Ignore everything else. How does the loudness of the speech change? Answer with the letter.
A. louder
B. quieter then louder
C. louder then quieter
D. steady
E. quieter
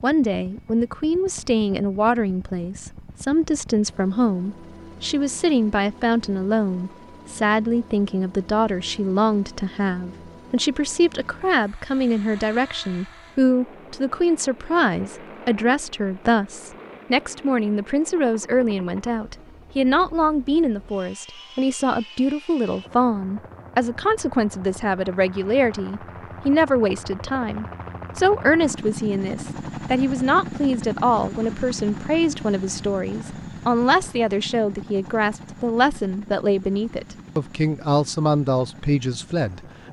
D.